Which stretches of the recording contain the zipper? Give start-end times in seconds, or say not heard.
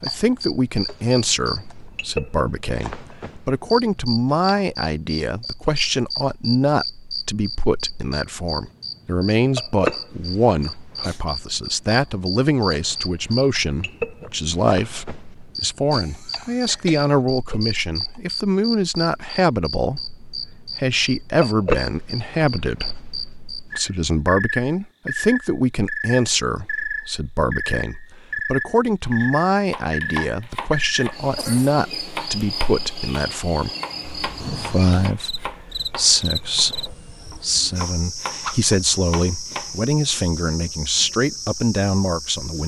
not heard.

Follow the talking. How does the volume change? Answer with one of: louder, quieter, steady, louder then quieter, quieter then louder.
steady.